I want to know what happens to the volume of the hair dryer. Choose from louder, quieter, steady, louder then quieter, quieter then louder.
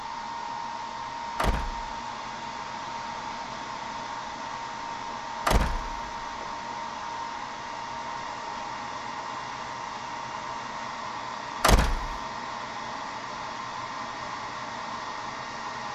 steady.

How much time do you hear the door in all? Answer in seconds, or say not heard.
2 s.